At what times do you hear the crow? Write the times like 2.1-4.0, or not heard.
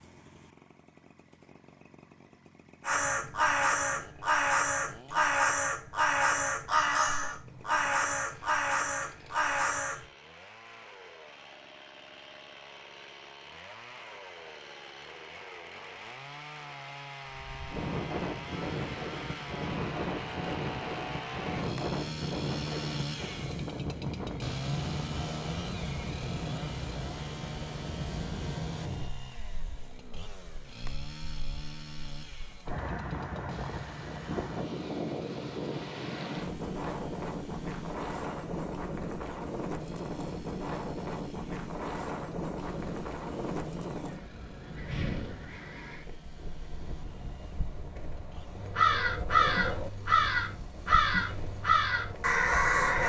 2.8-10.1, 48.5-53.0.